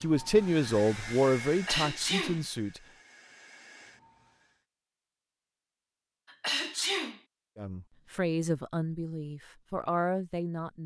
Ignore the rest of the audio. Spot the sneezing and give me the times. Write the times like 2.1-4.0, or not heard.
1.5-2.4, 6.3-7.2.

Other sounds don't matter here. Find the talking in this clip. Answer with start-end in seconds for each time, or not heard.
0.0-2.9, 7.5-10.8.